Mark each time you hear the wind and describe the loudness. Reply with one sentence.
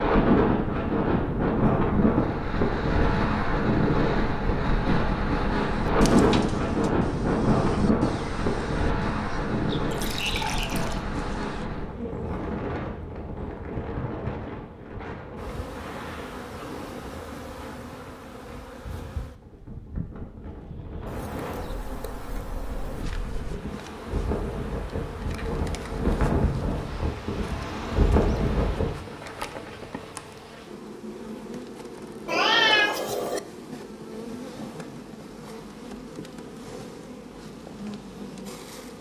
You can hear the wind from 0.0 to 29.0 s, getting quieter then louder.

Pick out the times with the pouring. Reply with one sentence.
The pouring can be heard from 9.9 to 11.0 s.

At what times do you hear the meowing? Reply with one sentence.
The meowing can be heard from 32.2 to 33.4 s.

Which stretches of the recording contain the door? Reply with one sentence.
You can't hear the door here.